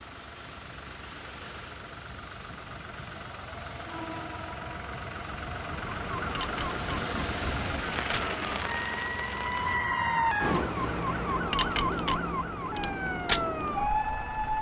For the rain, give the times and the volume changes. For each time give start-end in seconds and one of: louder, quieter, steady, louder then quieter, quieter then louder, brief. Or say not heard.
0.0-9.8 louder.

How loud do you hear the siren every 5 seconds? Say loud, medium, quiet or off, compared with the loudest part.
off, medium, loud.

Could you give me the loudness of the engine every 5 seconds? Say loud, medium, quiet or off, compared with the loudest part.
medium, loud, medium.